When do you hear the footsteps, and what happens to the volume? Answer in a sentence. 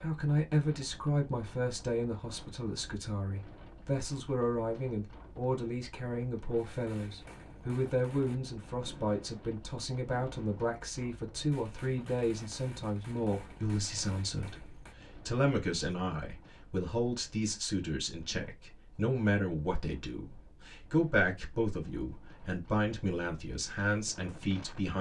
You can't hear the footsteps here.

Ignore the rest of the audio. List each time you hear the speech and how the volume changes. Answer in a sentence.
You can hear the speech from 0.0 to 24.9 s, at a steady volume.